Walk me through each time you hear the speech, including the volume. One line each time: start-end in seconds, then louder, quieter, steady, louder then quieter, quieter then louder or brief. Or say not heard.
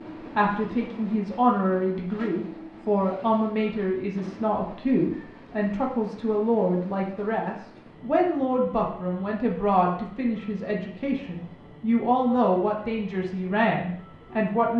0.3-14.7 steady.